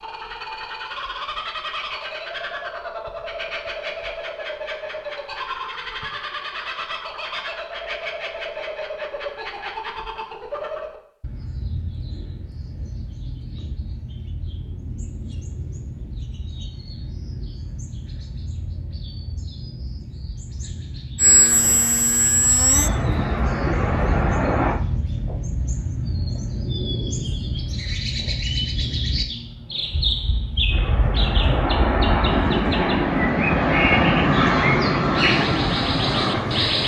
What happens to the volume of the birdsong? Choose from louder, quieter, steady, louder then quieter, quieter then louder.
quieter then louder.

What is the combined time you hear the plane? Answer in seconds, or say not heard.
10 s.